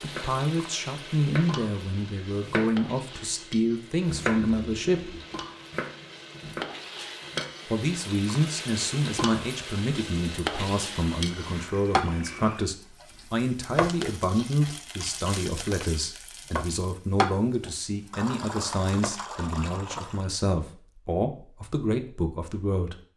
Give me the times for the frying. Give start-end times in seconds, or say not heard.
0.0-19.1.